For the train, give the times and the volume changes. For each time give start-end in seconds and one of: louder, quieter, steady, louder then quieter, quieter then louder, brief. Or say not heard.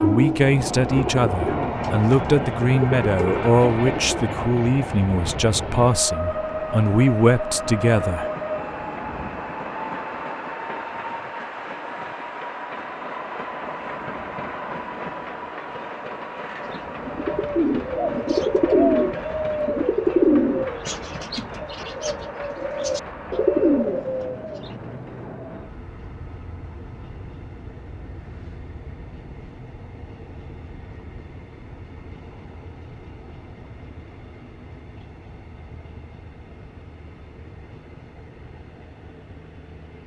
0.0-40.0 quieter.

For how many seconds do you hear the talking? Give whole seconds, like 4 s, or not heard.
8 s.